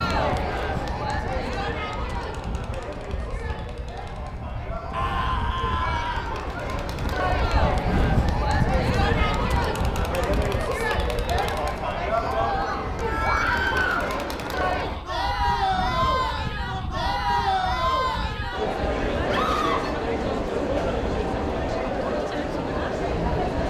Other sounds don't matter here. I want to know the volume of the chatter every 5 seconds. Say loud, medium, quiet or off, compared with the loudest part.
medium, loud, loud, loud, loud.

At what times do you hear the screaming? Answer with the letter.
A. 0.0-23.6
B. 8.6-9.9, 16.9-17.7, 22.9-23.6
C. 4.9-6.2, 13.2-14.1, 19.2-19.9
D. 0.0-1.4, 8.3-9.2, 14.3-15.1
C.